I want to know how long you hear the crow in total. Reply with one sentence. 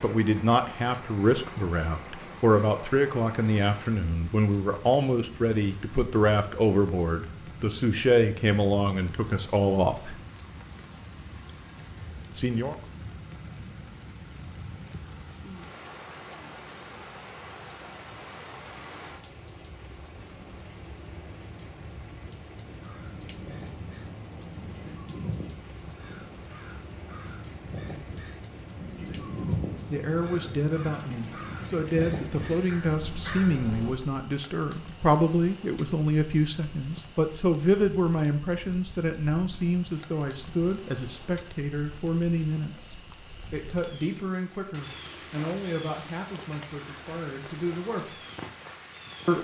The crow can be heard for 11 seconds in total.